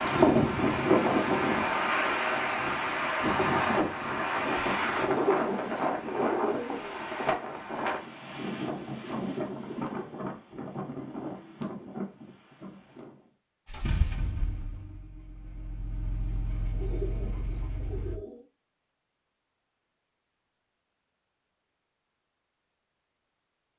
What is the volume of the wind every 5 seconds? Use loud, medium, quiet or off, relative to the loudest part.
loud, medium, quiet, off, off.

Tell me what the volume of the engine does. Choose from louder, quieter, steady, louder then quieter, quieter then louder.
quieter then louder.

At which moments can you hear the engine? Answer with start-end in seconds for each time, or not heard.
13.7-18.2.